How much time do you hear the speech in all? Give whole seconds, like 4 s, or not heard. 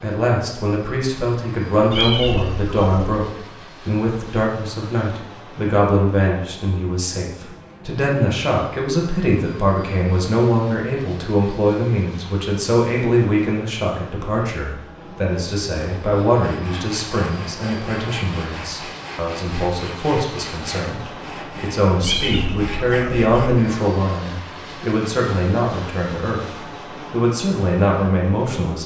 29 s.